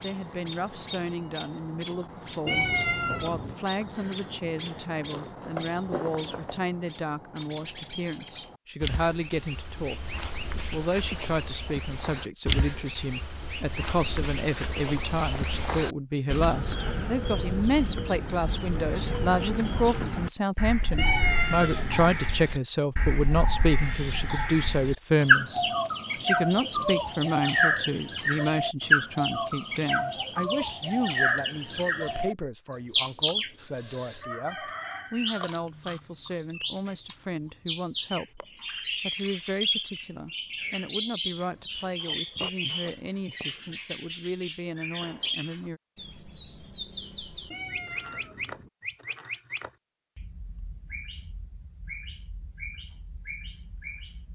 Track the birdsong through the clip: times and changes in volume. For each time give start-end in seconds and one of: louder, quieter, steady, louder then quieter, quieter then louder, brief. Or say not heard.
0.0-54.3 louder then quieter.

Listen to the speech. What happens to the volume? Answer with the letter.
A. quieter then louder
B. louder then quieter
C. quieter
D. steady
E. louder
B.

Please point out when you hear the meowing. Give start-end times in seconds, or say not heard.
2.5-3.5, 20.9-22.2, 47.5-48.7.